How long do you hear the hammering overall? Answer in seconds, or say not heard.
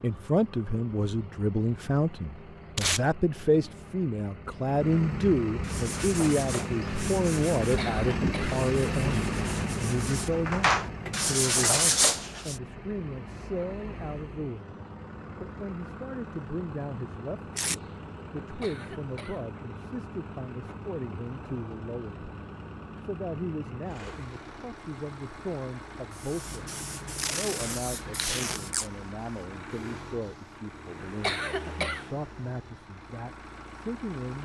not heard.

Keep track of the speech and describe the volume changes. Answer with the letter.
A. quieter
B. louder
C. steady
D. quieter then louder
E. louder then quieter
A.